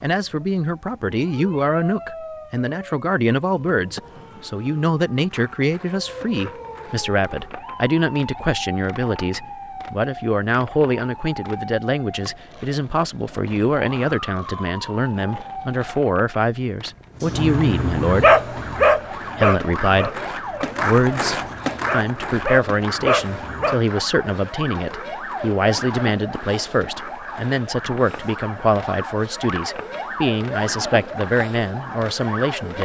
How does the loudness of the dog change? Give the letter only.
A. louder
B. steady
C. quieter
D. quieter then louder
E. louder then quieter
D.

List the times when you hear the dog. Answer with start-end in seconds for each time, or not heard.
17.2-23.8.